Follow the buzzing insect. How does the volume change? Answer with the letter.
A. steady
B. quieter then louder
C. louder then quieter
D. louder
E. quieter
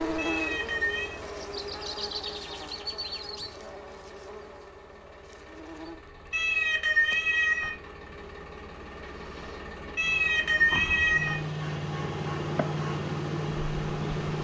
B.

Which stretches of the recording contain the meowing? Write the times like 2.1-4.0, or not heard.
0.1-1.2, 6.3-7.7, 9.9-11.3.